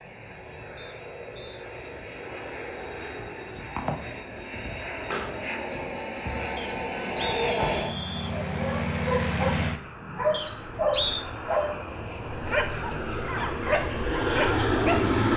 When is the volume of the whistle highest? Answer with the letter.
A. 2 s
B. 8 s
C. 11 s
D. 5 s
C.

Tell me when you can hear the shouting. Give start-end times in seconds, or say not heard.
not heard.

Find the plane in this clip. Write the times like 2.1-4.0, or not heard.
0.0-15.3.